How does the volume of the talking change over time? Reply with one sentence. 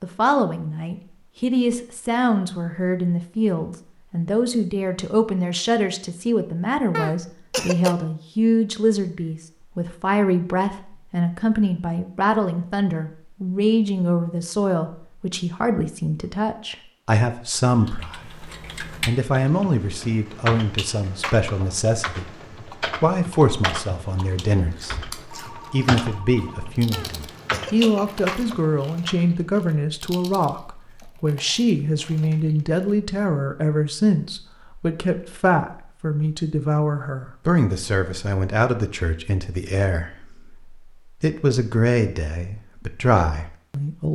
The loudness of the talking stays about the same.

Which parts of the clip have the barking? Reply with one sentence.
You can't hear the barking here.